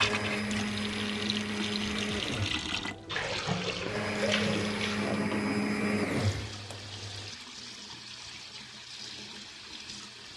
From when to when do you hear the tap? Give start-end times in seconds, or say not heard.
0.0-10.3.